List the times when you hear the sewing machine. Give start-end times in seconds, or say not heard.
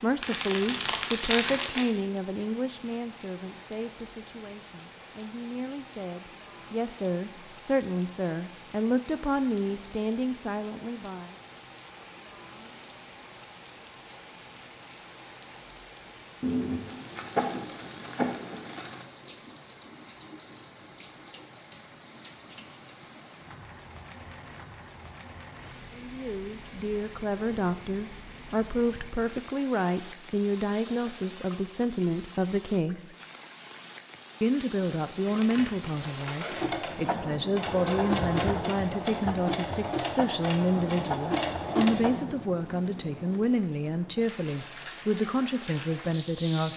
36.0-42.3.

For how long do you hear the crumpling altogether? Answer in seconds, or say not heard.
6 s.